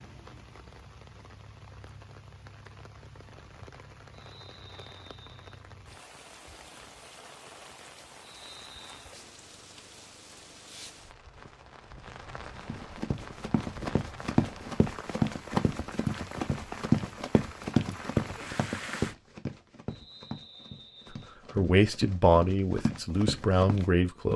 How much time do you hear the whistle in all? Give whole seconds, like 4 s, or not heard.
4 s.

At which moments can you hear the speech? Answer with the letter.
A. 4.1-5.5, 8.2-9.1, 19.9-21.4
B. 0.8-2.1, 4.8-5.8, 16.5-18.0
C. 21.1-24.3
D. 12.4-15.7
C.